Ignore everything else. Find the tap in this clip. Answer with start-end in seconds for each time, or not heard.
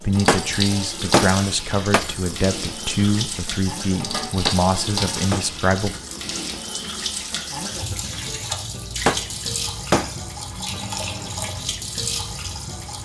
0.0-12.9.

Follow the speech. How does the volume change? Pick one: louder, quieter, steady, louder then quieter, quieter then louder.
steady.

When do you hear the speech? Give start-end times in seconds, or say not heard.
0.0-6.0.